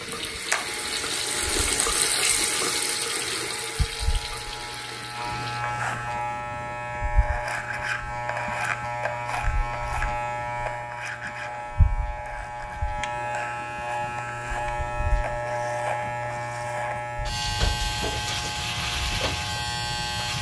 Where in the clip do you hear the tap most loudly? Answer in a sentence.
The loudest moment of the tap is at 2 seconds.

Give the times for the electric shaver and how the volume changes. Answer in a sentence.
The electric shaver can be heard from 0.0 to 20.3 s, getting louder.